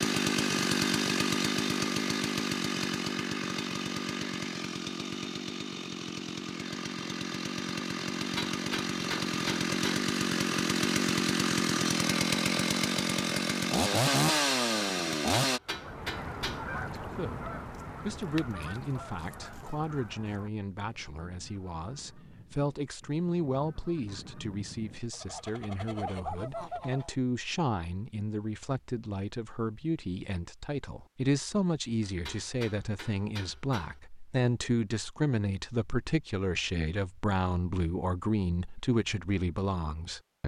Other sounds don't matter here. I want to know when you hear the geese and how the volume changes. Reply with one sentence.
The geese can be heard from 15.7 to 27.1 s, getting quieter then louder.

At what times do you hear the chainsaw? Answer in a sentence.
You can hear the chainsaw from 0.0 to 15.6 s.